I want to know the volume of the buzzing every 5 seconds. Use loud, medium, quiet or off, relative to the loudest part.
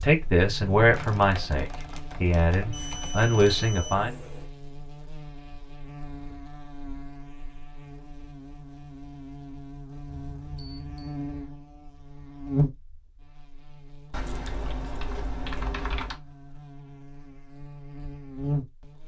medium, medium, loud, loud.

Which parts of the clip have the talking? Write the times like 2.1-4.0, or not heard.
0.0-4.2.